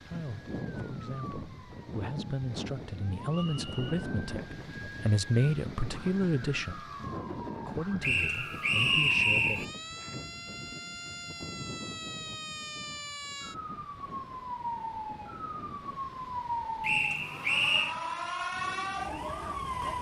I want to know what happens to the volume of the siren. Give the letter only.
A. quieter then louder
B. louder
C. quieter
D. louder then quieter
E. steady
B.